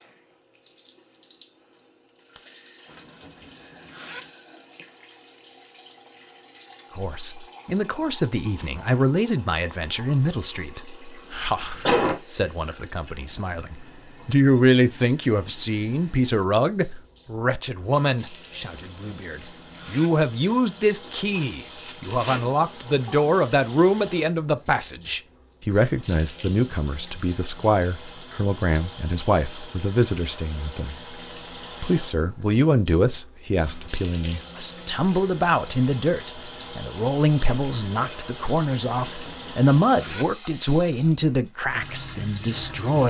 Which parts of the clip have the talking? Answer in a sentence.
You can hear the talking from 7.0 to 31.1 s and from 31.8 to 43.0 s.